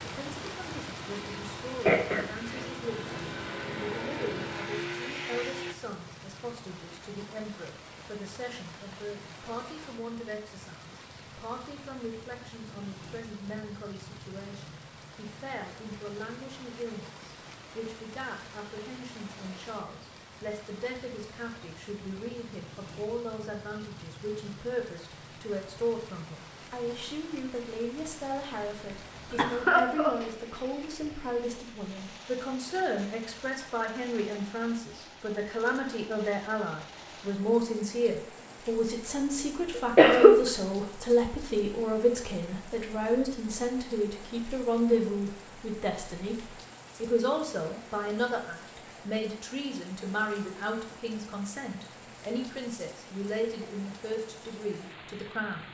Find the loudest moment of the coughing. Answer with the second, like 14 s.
40 s.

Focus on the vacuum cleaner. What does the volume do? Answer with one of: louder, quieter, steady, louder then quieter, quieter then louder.
louder.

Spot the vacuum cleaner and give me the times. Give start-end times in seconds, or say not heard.
0.0-5.8.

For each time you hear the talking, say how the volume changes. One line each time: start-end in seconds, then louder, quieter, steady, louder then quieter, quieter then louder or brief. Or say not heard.
0.0-55.6 louder.